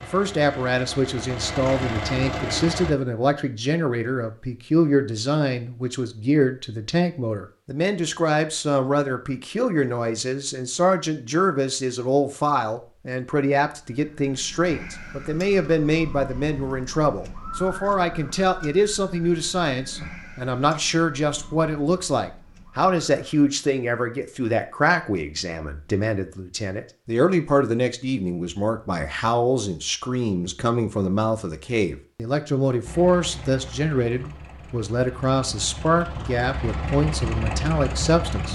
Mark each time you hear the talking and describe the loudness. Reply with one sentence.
You can hear the talking from 0.0 to 38.4 s, at a steady volume.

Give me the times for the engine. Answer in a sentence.
The engine can be heard from 0.0 to 3.0 s and from 32.9 to 38.4 s.